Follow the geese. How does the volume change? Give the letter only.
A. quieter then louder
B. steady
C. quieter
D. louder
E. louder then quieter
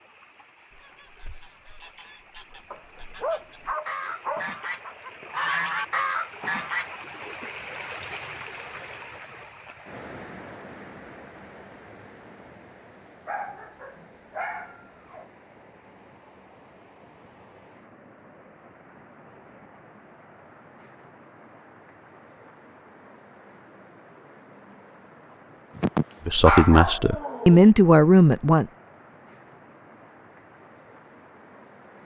D.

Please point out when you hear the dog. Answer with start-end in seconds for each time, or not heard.
2.7-4.9, 13.2-15.2, 25.8-27.7.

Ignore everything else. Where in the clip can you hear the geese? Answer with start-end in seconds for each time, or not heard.
0.7-7.0.